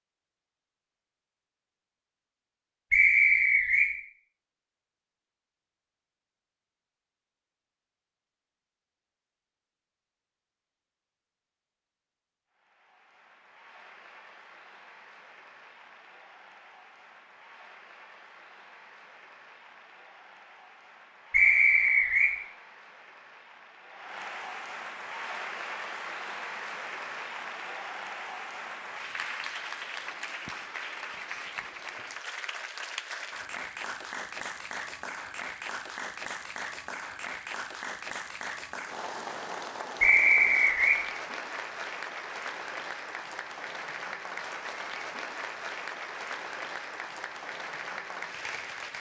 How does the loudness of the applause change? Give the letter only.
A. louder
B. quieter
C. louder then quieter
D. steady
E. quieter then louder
A.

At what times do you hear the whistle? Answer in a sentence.
You can hear the whistle from 2.9 to 3.9 s, from 21.3 to 22.4 s and from 40.0 to 41.0 s.